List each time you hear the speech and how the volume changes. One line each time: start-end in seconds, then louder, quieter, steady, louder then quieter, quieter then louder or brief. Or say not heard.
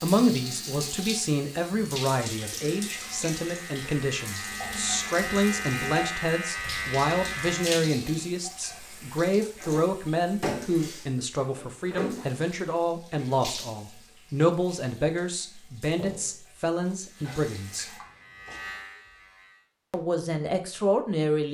0.0-17.9 steady
19.9-21.4 brief.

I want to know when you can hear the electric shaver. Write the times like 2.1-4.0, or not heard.
0.0-7.8, 17.0-19.7.